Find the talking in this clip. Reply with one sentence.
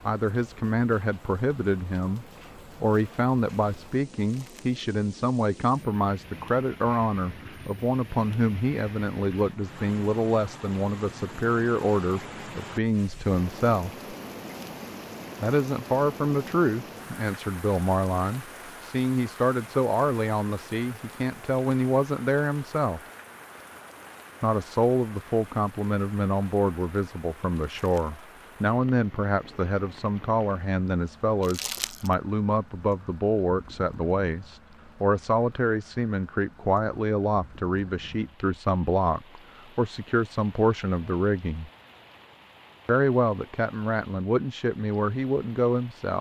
You can hear the talking from 0.1 to 13.9 s, from 15.4 to 23.0 s, from 24.4 to 41.7 s and from 42.9 to 46.1 s.